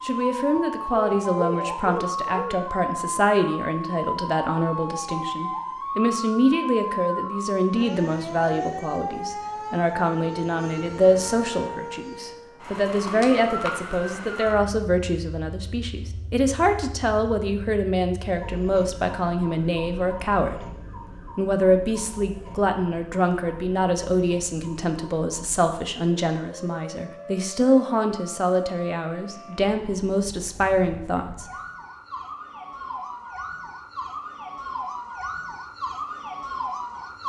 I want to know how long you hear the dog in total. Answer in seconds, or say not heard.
2 s.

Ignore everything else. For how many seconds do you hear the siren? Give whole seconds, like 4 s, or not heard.
37 s.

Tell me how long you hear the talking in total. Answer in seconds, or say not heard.
31 s.